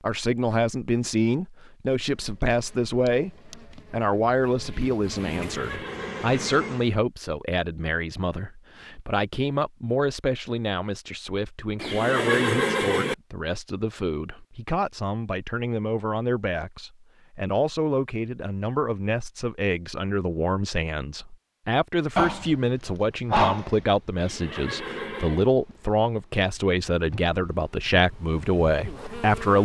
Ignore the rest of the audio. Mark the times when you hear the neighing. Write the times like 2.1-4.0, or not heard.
5.3-6.5, 11.8-13.2, 24.1-25.5.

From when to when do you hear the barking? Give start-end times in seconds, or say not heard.
22.1-23.9.